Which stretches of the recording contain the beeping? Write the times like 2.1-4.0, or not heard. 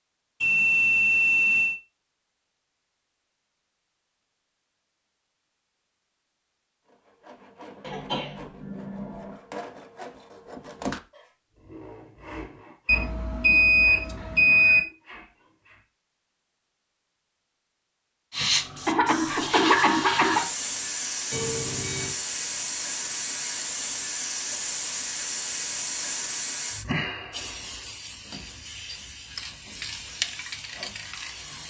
0.4-1.8, 12.8-14.8, 21.3-22.1.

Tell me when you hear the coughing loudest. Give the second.
20 s.